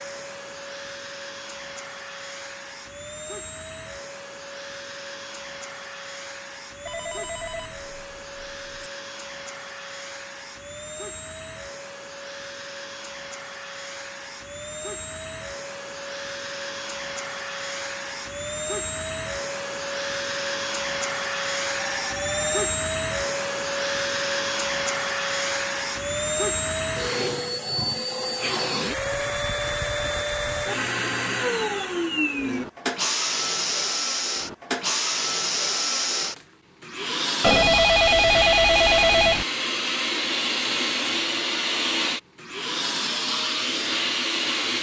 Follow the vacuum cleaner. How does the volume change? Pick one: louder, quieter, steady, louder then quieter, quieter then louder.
louder.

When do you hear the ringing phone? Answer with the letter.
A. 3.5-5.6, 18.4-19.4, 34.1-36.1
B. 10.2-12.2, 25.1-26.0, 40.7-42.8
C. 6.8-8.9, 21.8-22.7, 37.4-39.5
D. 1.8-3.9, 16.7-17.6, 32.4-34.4
C.